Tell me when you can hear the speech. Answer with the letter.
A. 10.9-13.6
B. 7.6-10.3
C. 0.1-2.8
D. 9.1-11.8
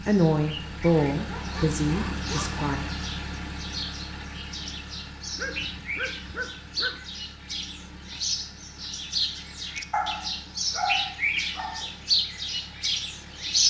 C.